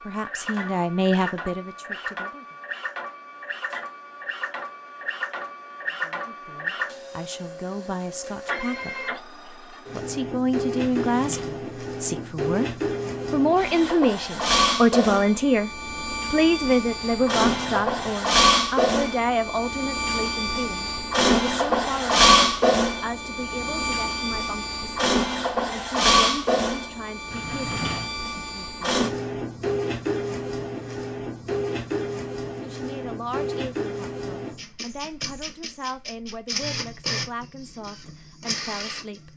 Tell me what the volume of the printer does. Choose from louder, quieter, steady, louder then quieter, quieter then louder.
louder then quieter.